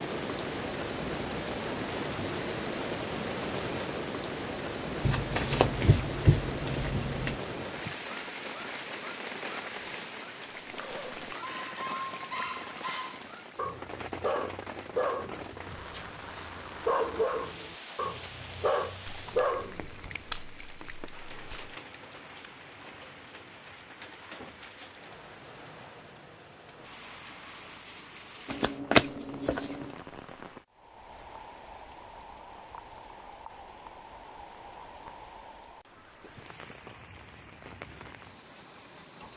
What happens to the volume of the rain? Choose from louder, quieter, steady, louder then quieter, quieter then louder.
quieter.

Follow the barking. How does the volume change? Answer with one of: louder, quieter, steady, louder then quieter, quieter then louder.
louder.